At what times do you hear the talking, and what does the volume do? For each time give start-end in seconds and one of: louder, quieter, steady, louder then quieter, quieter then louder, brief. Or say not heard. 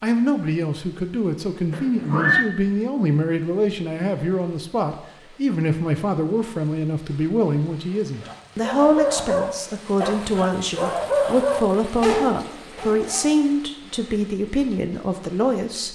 0.0-15.8 steady.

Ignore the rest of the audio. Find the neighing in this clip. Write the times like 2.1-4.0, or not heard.
1.7-2.5.